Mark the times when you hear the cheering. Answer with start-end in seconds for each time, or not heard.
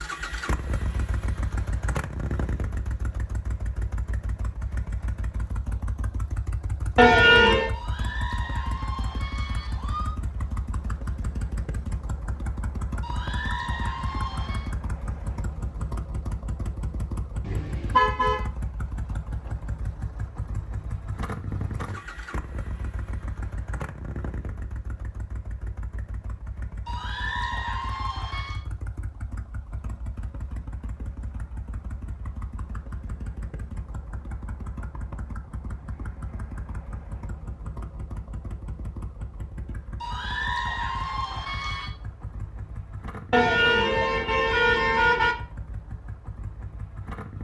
7.7-10.2, 13.0-14.7, 26.9-28.6, 40.0-41.9.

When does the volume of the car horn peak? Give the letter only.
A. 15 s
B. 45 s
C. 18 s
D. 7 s
D.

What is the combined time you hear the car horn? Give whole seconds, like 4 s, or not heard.
4 s.